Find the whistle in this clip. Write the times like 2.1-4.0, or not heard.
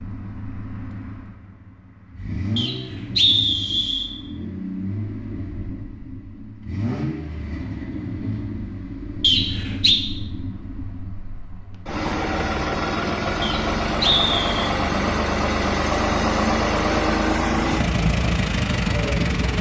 2.5-4.1, 9.2-10.0, 13.4-14.7.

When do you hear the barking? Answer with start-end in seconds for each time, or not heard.
not heard.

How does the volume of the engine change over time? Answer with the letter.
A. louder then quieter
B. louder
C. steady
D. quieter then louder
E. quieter
B.